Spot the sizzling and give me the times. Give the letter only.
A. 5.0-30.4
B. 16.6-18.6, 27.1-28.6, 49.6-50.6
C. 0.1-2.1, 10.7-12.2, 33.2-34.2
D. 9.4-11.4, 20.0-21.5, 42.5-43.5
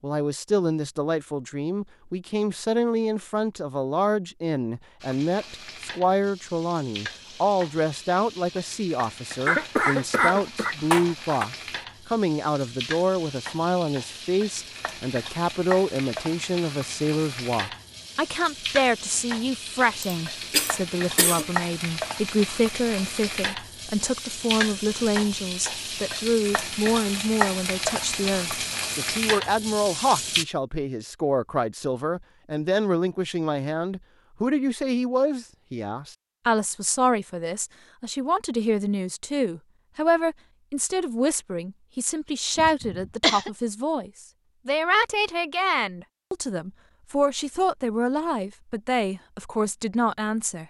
A.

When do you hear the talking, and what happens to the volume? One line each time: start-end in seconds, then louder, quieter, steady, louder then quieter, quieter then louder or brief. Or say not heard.
0.0-50.6 steady.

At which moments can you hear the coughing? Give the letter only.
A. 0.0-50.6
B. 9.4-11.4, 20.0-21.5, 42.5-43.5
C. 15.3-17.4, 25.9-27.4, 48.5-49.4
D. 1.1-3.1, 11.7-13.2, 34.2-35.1
B.